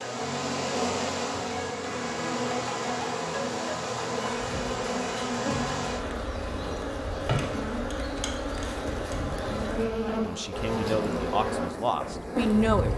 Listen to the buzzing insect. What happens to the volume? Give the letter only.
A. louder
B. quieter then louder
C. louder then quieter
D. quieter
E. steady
E.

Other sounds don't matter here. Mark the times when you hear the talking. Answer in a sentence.
The talking can be heard from 10.1 to 12.9 s.